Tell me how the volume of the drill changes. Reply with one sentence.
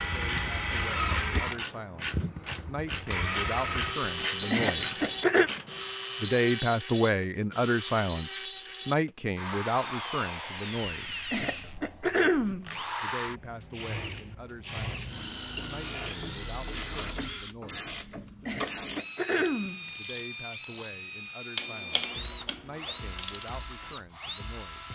The loudness of the drill goes down.